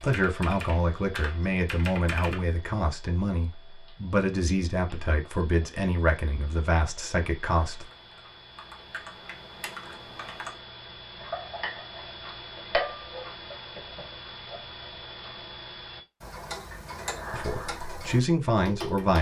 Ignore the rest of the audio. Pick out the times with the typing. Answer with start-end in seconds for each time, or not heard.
0.0-2.5, 7.7-10.6.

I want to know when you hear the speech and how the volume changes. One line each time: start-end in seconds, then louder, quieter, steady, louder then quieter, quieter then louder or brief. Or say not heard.
0.0-7.8 steady
17.3-19.1 brief.